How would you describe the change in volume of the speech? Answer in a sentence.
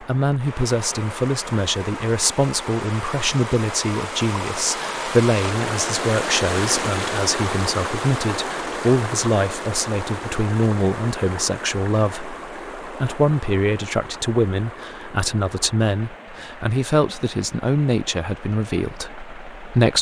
The loudness of the speech stays about the same.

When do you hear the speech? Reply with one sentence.
The speech can be heard from 0.0 to 19.9 s.